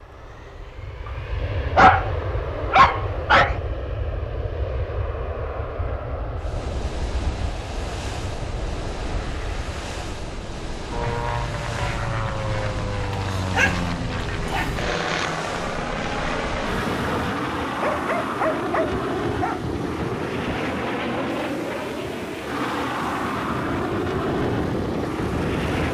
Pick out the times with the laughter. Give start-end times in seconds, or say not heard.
not heard.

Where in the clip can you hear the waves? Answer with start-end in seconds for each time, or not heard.
6.3-25.8.